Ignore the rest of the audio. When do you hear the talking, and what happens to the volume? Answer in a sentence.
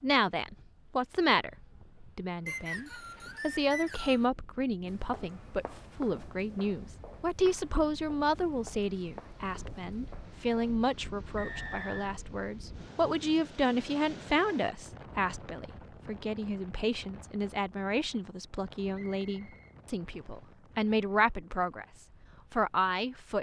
The talking can be heard from 0.0 to 23.3 s, at a steady volume.